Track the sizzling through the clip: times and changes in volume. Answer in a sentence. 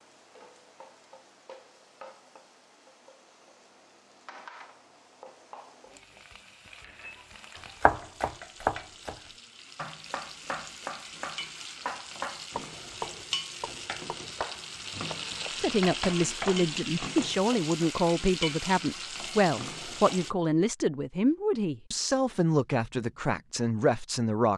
You can hear the sizzling from 0.0 to 20.3 s, getting louder.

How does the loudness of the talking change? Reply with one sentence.
The loudness of the talking stays about the same.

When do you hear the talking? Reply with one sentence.
You can hear the talking from 15.6 to 24.5 s.